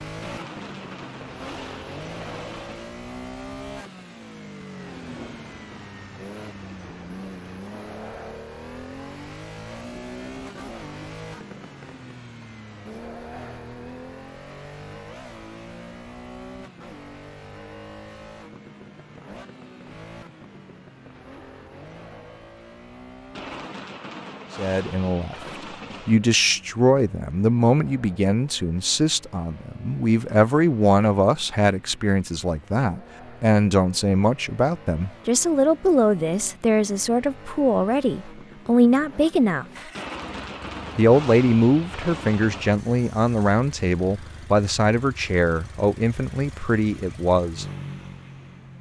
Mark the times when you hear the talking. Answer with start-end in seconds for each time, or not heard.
24.6-25.4, 26.1-39.6, 41.0-47.6.